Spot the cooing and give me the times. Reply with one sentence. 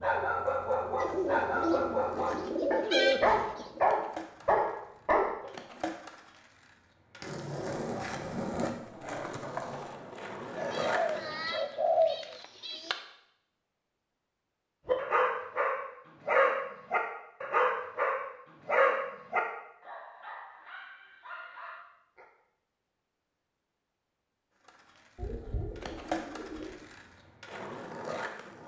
The cooing can be heard from 0.9 to 3.9 s, from 10.6 to 12.9 s and from 25.1 to 26.9 s.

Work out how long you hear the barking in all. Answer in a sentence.
You can hear the barking for 13 seconds altogether.